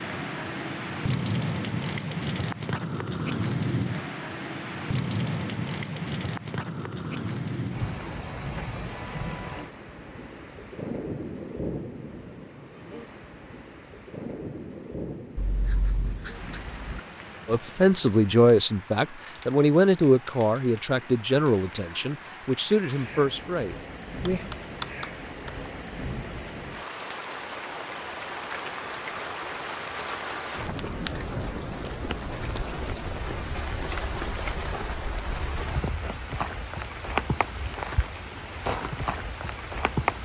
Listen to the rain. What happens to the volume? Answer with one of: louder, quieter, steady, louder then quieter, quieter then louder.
quieter then louder.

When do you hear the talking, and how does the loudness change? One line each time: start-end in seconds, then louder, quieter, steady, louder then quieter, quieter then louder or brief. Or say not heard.
17.4-24.5 quieter.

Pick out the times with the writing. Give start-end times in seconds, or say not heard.
15.3-17.0, 24.2-25.7.